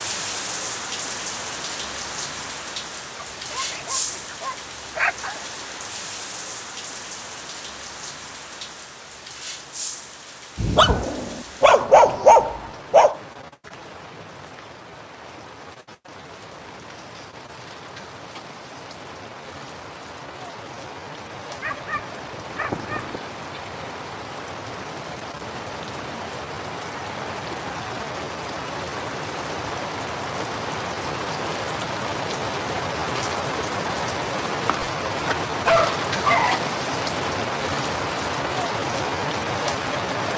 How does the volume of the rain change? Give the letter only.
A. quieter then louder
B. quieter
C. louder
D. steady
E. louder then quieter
A.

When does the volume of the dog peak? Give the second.
12 s.